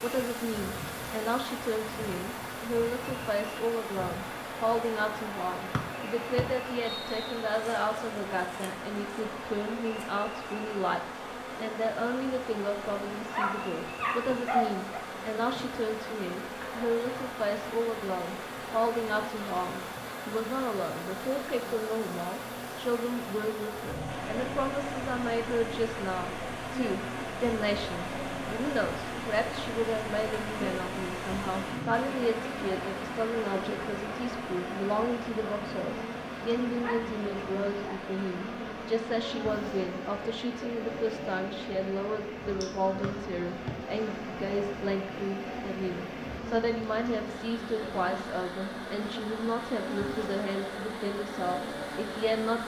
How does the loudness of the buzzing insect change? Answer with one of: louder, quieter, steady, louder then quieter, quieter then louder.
steady.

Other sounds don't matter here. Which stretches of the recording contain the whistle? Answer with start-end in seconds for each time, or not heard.
5.7-7.5, 43.0-43.8.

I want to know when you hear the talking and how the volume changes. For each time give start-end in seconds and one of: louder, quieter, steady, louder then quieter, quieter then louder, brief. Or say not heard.
0.0-52.6 steady.